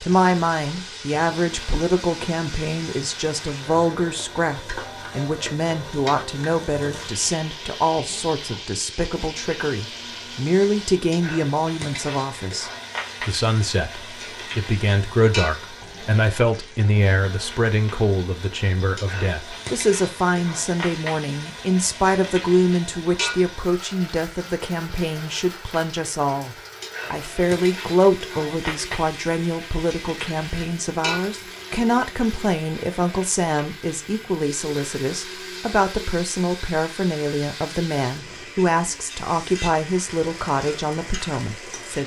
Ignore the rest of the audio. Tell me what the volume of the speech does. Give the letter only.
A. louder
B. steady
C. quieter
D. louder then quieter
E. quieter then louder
B.